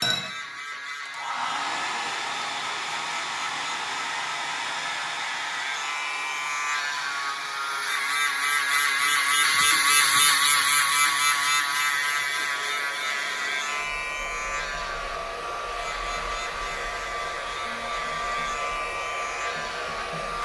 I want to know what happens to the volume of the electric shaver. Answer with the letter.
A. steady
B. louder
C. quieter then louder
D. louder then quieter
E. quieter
D.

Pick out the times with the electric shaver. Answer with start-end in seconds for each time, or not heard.
0.0-20.4.